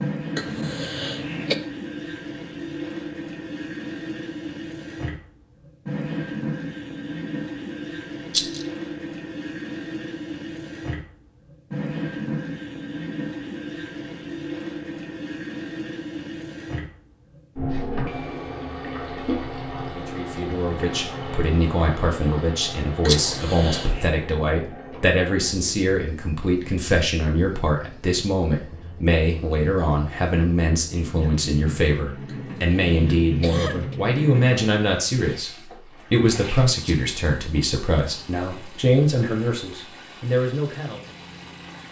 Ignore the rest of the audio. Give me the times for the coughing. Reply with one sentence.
The coughing can be heard from 0.3 to 1.6 s, from 23.0 to 24.1 s and from 32.2 to 34.0 s.